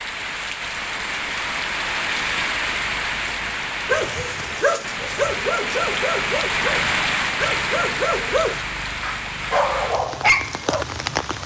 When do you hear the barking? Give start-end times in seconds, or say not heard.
3.9-10.8.